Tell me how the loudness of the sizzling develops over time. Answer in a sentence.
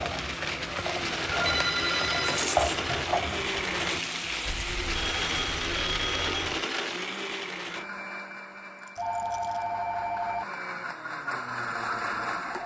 The loudness of the sizzling goes up, then down.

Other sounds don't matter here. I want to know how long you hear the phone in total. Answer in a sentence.
You can hear the phone for 5 seconds altogether.